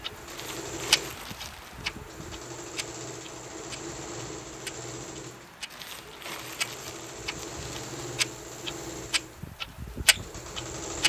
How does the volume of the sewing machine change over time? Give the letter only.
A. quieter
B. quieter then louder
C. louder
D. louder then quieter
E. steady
E.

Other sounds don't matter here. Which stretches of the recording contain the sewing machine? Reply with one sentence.
The sewing machine can be heard from 0.0 to 11.0 s.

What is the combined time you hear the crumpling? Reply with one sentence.
You can hear the crumpling for 4 seconds altogether.